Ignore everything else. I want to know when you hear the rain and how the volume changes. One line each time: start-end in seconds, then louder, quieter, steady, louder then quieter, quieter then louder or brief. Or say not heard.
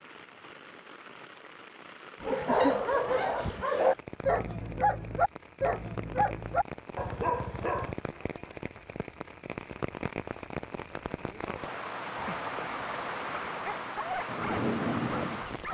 0.0-15.6 louder.